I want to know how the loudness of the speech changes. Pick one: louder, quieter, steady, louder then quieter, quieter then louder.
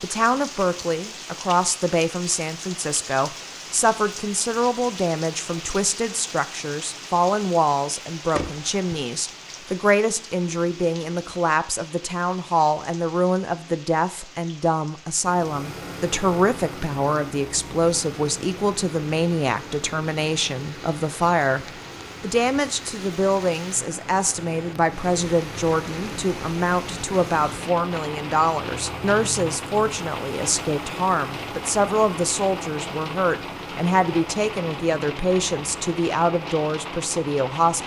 steady.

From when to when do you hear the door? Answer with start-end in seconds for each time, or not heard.
8.3-9.1.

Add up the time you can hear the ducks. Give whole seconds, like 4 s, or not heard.
not heard.